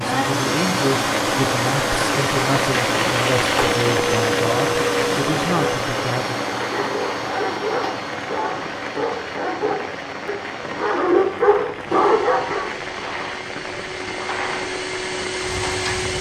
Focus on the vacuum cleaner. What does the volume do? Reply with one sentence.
The volume of the vacuum cleaner goes down, then up.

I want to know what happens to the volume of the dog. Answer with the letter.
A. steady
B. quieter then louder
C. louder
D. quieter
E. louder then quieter
C.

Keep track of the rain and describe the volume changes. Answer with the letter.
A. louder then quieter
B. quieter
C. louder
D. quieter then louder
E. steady
B.